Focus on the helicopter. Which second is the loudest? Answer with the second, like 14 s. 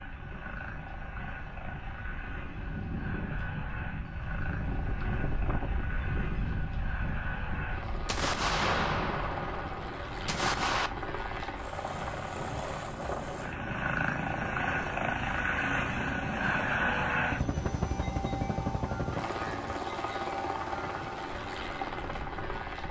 17 s.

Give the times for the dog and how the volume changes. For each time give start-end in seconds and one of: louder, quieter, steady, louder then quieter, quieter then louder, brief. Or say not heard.
not heard.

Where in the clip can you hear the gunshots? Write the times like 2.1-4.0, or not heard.
8.1-10.9.